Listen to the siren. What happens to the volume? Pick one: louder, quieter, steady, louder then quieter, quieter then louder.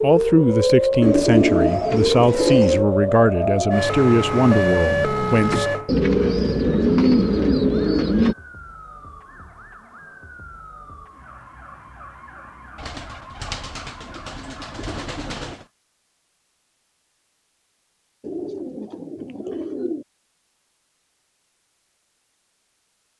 quieter.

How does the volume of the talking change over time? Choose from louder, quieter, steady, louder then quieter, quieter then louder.
steady.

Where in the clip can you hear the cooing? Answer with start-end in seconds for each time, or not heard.
1.0-2.9, 5.8-8.3, 12.8-15.6, 18.2-20.1.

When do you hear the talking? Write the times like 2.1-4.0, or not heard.
0.0-5.7.